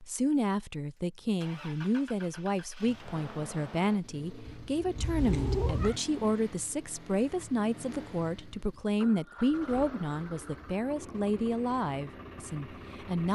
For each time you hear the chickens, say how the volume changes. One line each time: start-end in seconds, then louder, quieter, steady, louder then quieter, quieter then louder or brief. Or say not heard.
not heard.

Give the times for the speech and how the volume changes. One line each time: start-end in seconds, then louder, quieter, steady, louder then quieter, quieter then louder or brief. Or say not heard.
0.1-13.2 steady.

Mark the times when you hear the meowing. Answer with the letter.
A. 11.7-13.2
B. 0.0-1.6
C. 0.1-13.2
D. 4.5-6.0
D.